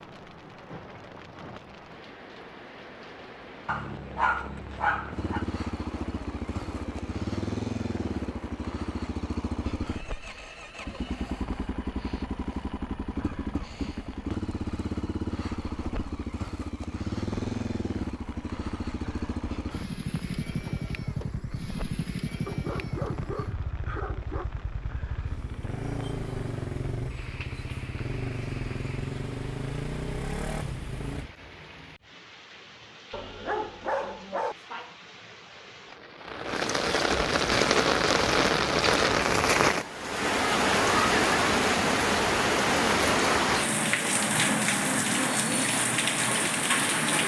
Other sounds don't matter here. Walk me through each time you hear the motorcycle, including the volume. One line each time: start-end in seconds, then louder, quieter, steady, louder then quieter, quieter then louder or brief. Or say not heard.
5.1-31.4 steady.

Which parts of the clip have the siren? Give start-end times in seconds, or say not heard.
not heard.